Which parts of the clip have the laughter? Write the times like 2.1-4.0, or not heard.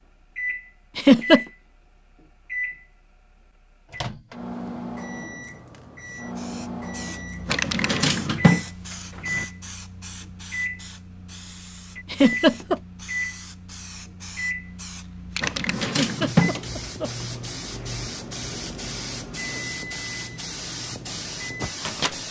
0.9-1.4, 12.1-12.8, 15.8-17.2.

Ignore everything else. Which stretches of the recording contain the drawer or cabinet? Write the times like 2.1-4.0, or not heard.
7.5-9.4, 15.4-17.2.